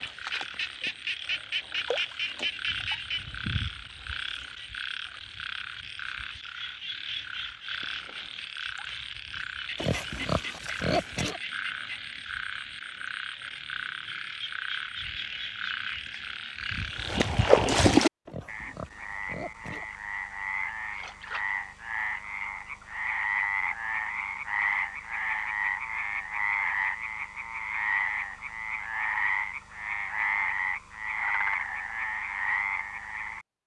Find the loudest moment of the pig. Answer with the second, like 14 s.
11 s.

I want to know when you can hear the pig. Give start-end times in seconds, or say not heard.
9.8-11.4, 18.2-19.9.